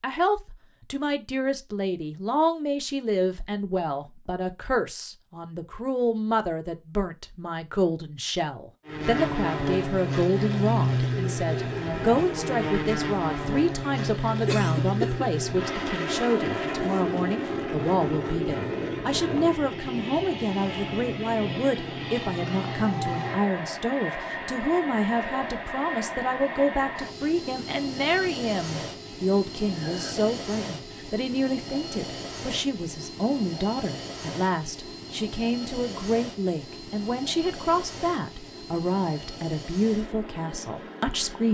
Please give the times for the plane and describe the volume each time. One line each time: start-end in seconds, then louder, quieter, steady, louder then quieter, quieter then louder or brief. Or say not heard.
8.8-41.4 quieter.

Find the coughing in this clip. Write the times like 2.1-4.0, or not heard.
14.4-15.3, 29.6-30.3.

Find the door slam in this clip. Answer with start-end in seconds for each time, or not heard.
not heard.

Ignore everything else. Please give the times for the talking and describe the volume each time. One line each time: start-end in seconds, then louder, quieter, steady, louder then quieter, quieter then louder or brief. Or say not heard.
0.0-41.4 steady.